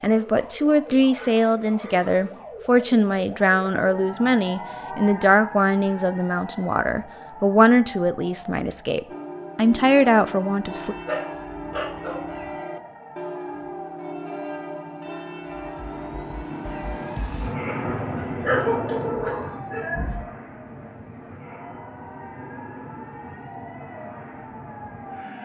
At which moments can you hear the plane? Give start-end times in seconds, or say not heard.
15.6-25.4.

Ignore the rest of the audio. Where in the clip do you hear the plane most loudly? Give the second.
18 s.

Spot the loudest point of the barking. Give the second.
19 s.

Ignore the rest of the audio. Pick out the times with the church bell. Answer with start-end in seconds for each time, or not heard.
9.1-17.1.